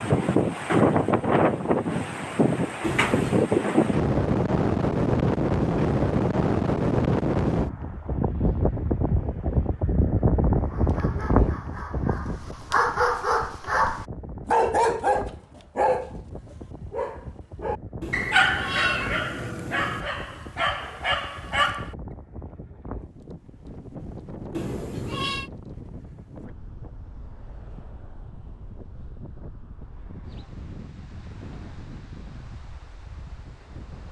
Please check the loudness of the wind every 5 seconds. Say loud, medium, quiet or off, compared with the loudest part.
loud, loud, medium, quiet, quiet, quiet, quiet.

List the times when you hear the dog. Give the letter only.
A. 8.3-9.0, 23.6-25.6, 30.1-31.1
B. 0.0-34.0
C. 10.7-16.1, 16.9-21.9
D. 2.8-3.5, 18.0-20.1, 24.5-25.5
C.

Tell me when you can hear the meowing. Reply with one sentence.
You can hear the meowing from 2.8 to 3.5 s, from 18.0 to 20.1 s and from 24.5 to 25.5 s.